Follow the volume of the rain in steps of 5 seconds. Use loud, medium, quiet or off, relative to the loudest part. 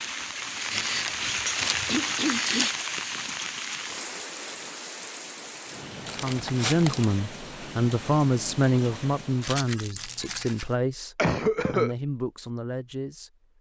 loud, medium, off.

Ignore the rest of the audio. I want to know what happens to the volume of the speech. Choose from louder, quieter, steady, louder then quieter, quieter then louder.
quieter.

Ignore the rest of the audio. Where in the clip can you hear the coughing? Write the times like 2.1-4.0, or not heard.
1.9-2.7, 11.2-11.9.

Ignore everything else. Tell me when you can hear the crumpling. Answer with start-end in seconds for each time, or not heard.
0.7-2.9, 6.0-7.1, 9.4-10.7.